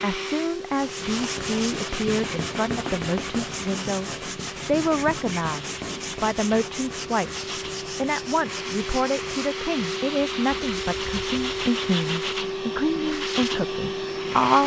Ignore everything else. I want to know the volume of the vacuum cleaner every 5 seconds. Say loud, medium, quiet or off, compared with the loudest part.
medium, medium, loud.